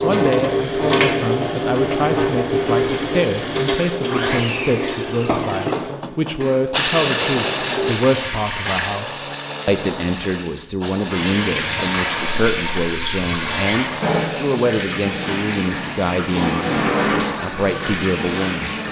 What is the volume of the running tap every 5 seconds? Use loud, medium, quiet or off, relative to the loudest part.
loud, medium, loud, loud.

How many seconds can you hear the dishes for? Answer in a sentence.
You can't hear the dishes here.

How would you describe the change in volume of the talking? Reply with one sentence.
The loudness of the talking stays about the same.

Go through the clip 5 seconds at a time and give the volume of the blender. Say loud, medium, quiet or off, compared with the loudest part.
medium, loud, medium, medium.